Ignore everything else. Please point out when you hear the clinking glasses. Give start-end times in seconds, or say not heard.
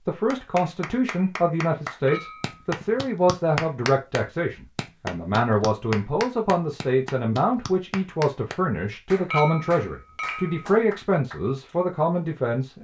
2.0-2.6, 9.3-10.7.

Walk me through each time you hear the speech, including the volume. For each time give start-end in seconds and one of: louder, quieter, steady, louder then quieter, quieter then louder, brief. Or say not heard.
0.1-12.7 steady.